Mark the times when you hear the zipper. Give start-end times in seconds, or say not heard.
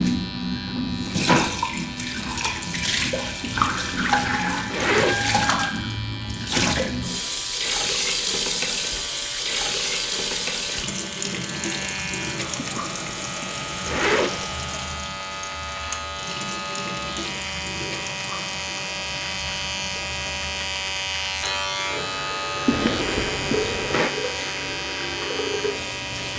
3.4-5.2, 12.6-14.4, 22.6-24.1.